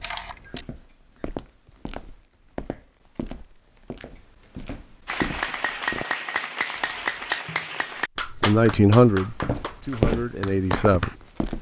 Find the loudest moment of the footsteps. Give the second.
10 s.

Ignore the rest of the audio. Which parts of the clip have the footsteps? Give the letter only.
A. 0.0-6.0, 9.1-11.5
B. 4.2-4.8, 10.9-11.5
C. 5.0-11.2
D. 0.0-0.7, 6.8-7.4
A.